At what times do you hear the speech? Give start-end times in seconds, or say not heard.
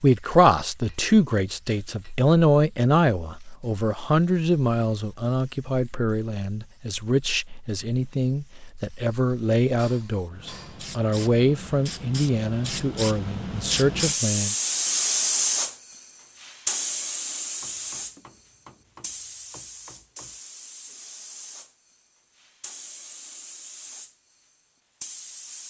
0.0-14.6.